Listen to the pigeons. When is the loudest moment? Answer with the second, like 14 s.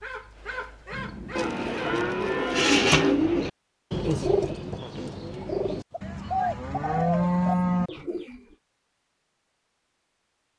3 s.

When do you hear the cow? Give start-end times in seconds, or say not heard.
1.4-3.2, 6.0-7.9.